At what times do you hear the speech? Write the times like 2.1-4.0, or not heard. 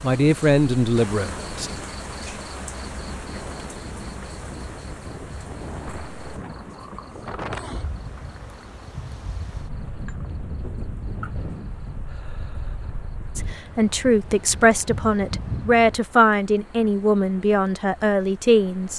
0.0-1.7, 13.3-18.9.